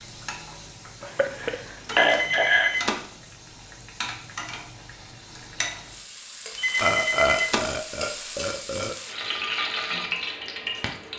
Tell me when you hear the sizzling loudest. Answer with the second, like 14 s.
10 s.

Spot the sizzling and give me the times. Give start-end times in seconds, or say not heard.
0.0-11.1.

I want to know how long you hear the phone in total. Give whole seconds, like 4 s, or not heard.
2 s.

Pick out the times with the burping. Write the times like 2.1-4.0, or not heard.
1.0-3.0, 6.8-8.9.